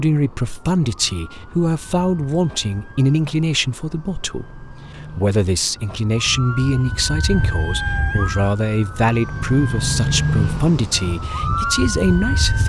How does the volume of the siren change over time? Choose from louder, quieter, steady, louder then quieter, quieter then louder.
louder.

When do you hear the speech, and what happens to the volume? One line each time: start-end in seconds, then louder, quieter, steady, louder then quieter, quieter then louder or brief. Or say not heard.
0.0-12.6 steady.